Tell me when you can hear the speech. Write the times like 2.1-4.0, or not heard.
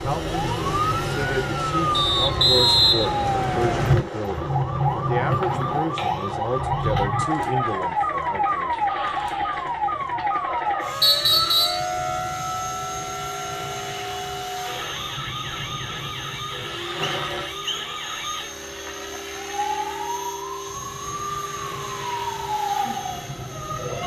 0.0-8.8.